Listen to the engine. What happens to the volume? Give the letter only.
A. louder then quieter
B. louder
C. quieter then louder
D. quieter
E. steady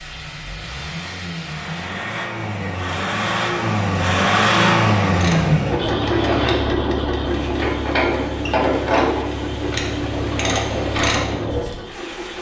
A.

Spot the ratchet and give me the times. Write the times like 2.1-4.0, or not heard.
5.1-11.6.